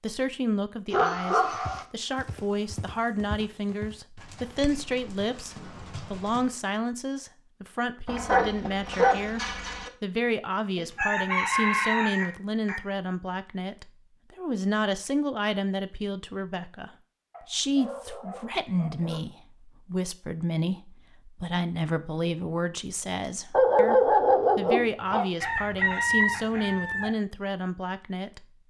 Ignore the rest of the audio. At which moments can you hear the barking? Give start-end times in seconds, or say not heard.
0.9-1.9, 8.1-9.9, 17.3-19.2, 23.5-25.3.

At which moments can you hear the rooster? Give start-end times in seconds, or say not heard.
10.8-12.8, 25.4-27.1.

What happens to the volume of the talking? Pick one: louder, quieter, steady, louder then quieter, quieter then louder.
steady.